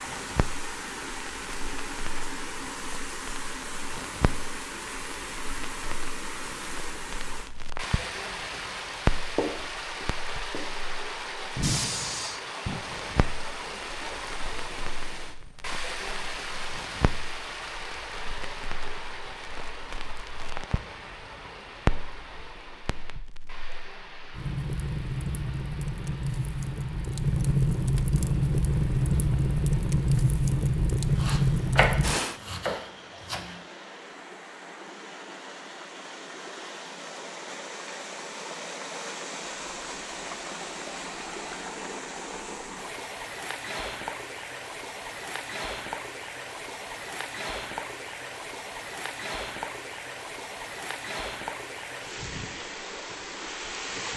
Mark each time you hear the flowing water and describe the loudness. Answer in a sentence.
You can hear the flowing water from 0.0 to 54.1 s, getting quieter then louder.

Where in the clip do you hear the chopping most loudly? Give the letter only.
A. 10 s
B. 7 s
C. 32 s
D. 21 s
C.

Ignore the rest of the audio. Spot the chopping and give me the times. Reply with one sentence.
You can hear the chopping from 9.3 to 10.7 s and from 31.1 to 33.5 s.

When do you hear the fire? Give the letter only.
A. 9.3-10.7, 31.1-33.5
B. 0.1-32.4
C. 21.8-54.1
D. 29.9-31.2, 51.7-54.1
B.